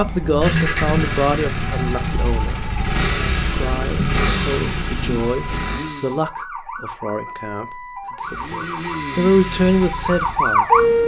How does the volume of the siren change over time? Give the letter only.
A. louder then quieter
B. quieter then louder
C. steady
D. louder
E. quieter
B.